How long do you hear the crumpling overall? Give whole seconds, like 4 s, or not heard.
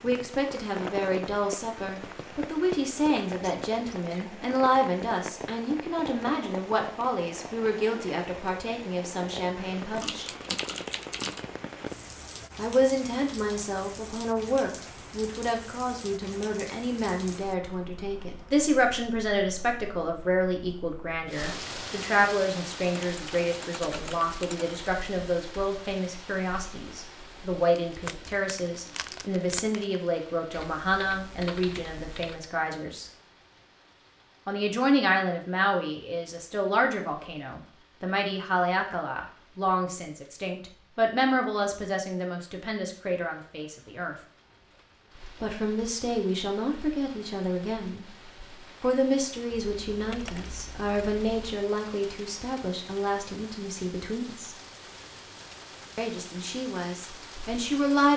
2 s.